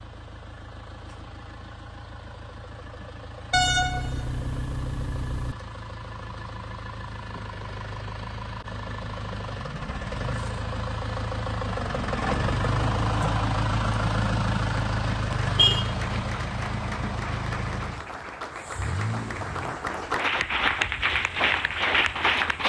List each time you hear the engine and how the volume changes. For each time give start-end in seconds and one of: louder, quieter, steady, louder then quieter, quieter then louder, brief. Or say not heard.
0.0-22.6 louder then quieter.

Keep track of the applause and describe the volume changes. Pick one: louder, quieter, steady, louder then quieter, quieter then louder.
louder.